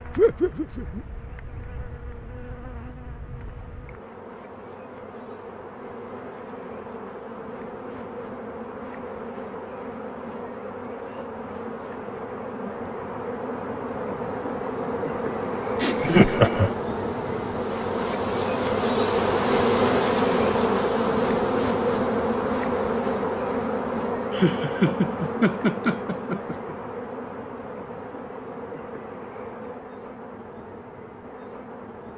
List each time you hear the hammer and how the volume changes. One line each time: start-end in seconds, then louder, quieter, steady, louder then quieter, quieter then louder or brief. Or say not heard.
not heard.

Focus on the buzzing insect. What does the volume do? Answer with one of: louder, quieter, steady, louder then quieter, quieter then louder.
louder then quieter.